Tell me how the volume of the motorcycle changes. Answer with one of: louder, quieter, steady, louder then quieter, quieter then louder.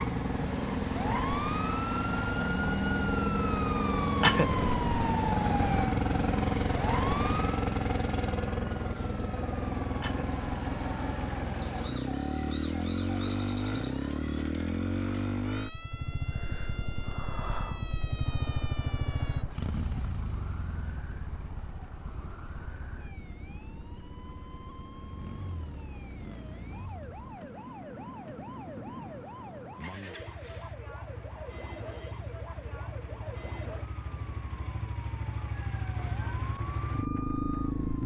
quieter then louder.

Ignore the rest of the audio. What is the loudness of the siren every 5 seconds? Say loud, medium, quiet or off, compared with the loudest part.
loud, loud, quiet, quiet, quiet, quiet, quiet, quiet.